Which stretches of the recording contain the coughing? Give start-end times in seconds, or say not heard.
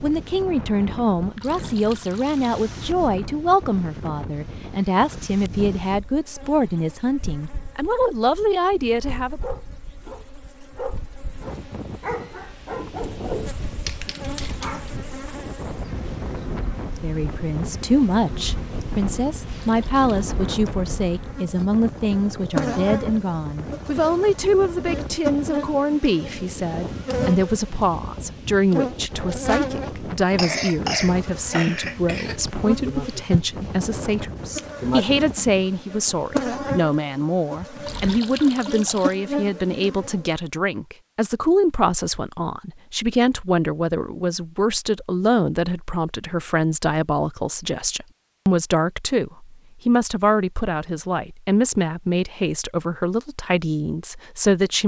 30.4-32.4.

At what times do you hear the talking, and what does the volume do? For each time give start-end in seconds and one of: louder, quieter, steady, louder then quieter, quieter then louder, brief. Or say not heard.
0.0-9.4 steady
17.0-54.8 steady.